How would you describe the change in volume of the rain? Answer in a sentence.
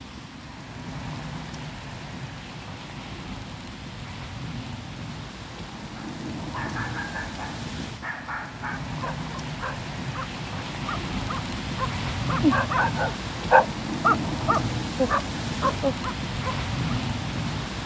The volume of the rain goes up.